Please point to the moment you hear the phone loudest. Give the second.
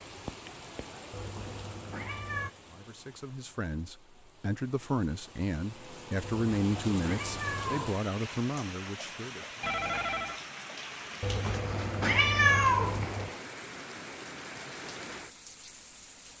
10 s.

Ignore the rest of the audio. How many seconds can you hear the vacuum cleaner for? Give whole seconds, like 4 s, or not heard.
not heard.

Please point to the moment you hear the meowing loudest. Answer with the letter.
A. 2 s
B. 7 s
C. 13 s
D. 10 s
C.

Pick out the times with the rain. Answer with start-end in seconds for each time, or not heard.
0.0-16.3.